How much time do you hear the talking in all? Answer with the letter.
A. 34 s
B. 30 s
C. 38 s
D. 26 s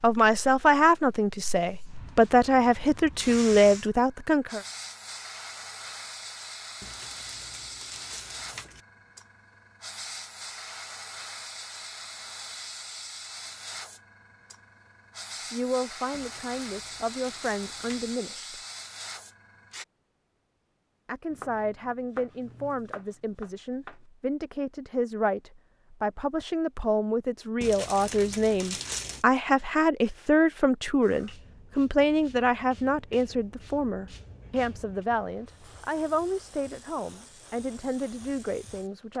D.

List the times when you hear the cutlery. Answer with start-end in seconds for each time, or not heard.
not heard.